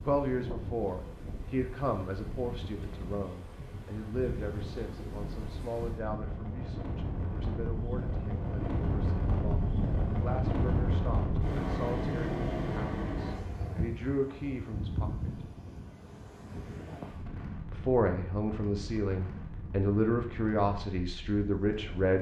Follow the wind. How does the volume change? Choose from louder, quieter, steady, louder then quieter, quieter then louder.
louder then quieter.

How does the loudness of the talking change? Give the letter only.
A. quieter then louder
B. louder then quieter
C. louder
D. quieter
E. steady
A.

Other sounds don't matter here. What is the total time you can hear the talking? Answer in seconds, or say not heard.
20 s.